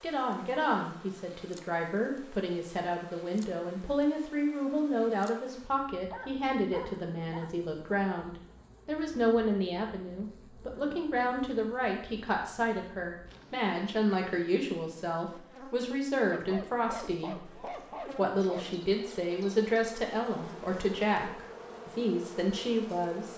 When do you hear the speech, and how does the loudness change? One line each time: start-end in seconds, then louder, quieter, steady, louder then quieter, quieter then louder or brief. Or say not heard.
0.0-23.3 steady.